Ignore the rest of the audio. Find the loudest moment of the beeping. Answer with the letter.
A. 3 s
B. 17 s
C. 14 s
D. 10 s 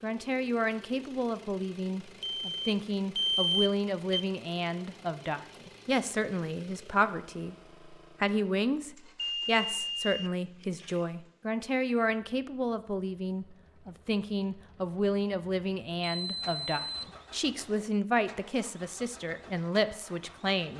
A.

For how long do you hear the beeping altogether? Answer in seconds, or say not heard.
5 s.